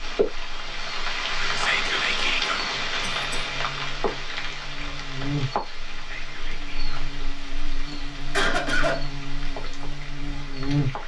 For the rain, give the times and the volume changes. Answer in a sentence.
The rain can be heard from 0.0 to 11.0 s, getting quieter.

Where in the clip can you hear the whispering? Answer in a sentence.
The whispering can be heard from 1.6 to 2.6 s and from 6.0 to 7.0 s.